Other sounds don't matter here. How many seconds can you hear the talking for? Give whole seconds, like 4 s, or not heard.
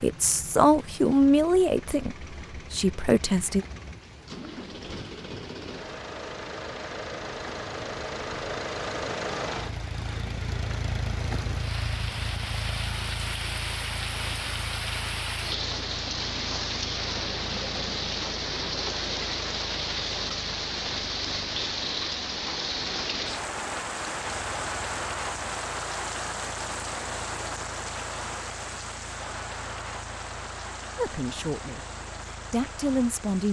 6 s.